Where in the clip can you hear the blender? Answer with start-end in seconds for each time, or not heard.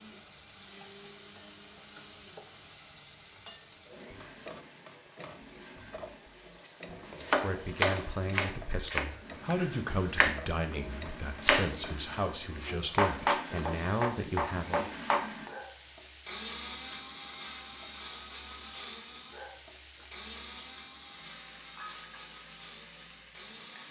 0.0-23.8.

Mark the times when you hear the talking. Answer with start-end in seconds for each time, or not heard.
7.4-14.9.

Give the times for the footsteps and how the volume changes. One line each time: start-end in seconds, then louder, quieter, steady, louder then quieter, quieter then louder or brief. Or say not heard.
not heard.